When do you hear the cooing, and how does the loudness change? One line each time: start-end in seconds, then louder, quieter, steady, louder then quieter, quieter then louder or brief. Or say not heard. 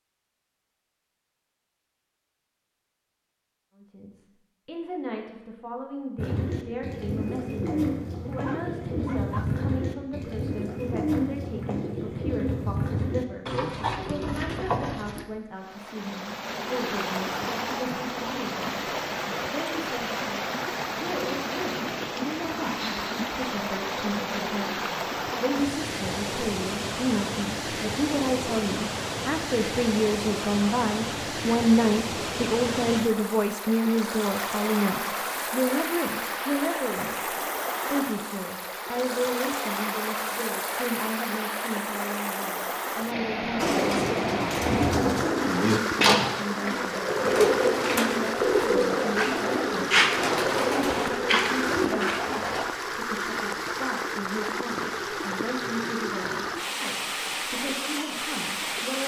6.2-15.2 steady
43.5-52.6 steady.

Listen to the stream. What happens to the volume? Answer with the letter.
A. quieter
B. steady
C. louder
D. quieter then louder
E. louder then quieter
B.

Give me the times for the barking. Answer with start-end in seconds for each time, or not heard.
8.4-9.4.